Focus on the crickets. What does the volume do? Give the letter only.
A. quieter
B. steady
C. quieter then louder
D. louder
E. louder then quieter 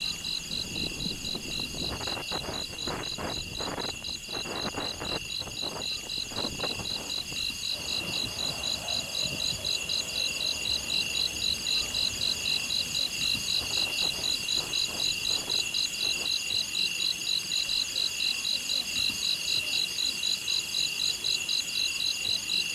D.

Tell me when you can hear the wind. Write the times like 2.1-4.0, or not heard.
0.0-16.3.